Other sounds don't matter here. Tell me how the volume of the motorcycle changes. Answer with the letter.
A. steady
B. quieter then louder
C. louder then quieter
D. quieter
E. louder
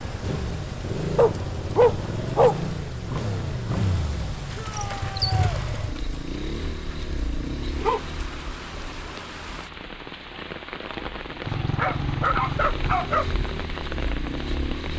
B.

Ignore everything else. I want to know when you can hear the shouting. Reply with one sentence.
The shouting can be heard from 4.5 to 5.6 s.